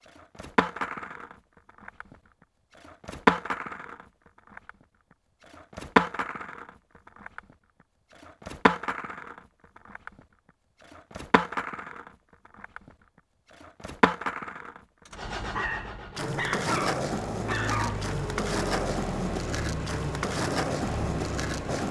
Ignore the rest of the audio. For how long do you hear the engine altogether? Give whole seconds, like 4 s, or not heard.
7 s.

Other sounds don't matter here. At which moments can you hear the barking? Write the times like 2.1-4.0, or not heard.
15.5-18.1.